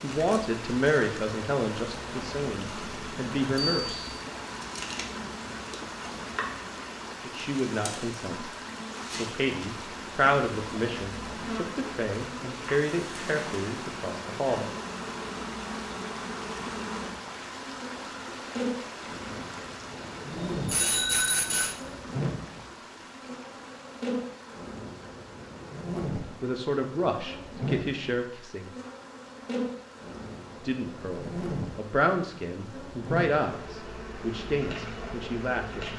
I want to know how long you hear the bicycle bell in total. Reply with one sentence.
The bicycle bell can be heard for 2 seconds in total.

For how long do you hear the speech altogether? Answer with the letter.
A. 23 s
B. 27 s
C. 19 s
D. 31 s
C.